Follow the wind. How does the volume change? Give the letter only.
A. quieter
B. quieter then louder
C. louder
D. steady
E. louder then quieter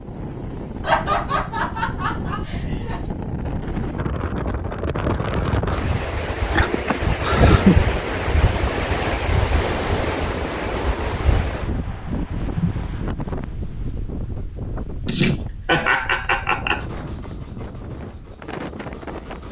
E.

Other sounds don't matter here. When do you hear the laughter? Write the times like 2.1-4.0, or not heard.
0.8-3.0, 6.5-7.9, 15.1-16.9.